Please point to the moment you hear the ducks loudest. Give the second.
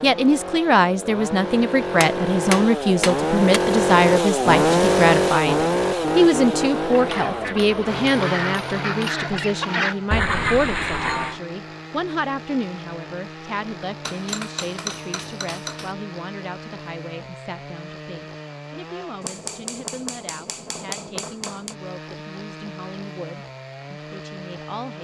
10 s.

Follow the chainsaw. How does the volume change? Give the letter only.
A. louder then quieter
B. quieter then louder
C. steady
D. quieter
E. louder
D.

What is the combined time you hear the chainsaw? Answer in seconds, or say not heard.
25 s.